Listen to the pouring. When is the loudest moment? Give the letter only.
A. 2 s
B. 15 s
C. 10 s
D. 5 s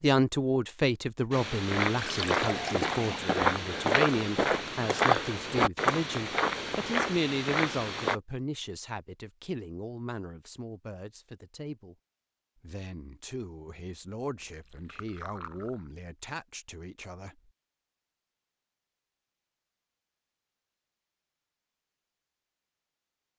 A.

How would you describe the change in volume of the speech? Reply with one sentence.
The loudness of the speech goes down.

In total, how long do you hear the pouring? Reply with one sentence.
The pouring can be heard for 3 seconds in total.